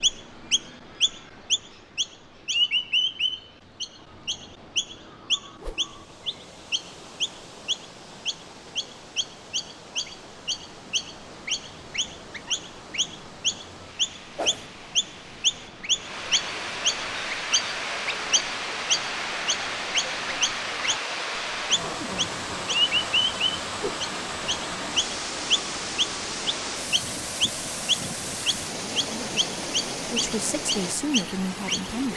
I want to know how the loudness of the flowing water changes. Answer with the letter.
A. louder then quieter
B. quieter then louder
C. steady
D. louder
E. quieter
D.